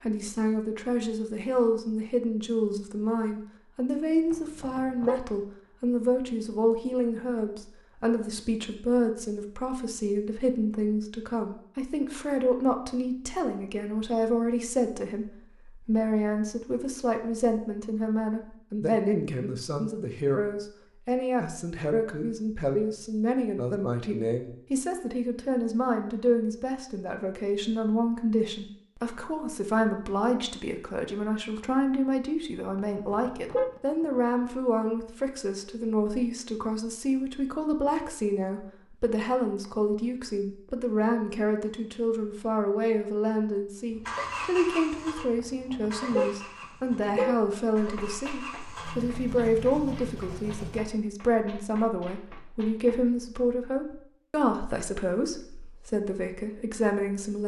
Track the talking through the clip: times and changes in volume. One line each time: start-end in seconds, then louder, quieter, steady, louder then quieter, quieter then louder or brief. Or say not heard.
0.0-57.4 steady.